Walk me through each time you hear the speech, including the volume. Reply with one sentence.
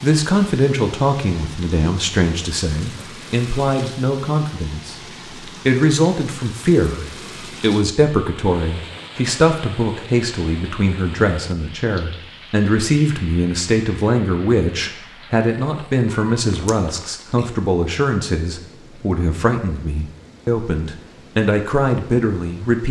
You can hear the speech from 0.0 to 22.8 s, at a steady volume.